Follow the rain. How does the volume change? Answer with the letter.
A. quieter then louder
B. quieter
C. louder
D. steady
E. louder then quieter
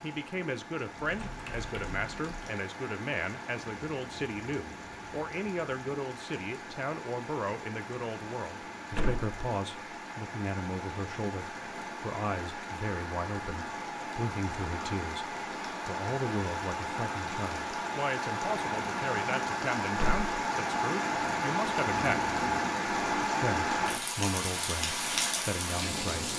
C.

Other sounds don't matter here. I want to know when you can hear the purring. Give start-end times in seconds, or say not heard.
not heard.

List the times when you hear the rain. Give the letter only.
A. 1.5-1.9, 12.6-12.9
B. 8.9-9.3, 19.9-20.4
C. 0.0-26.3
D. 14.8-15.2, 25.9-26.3
C.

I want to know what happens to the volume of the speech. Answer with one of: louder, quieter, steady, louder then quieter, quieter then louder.
steady.